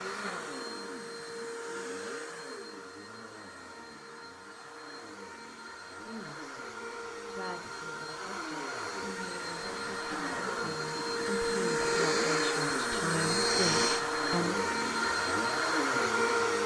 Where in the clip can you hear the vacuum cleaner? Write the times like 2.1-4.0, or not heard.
0.0-16.6.